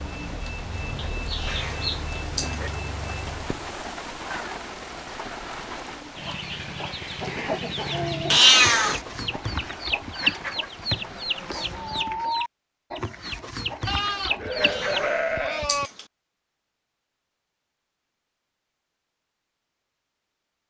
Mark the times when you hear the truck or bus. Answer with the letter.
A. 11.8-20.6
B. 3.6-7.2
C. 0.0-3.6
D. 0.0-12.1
C.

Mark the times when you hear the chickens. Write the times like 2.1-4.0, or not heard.
6.2-15.1.